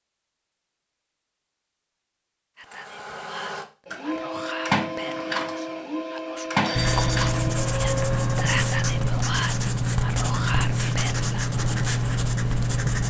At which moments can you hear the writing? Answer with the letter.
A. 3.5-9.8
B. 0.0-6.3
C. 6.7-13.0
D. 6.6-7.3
C.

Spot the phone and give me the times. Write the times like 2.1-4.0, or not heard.
6.6-7.3.